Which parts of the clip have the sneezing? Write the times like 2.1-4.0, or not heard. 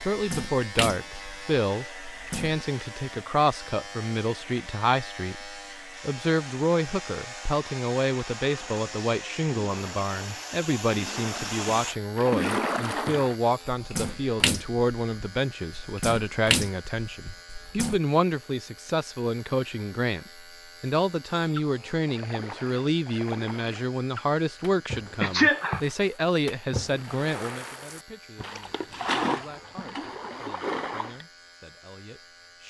25.2-25.8.